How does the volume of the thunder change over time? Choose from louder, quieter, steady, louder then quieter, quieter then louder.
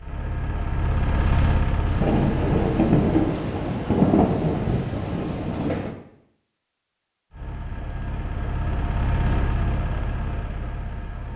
quieter.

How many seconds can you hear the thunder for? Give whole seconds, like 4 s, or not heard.
4 s.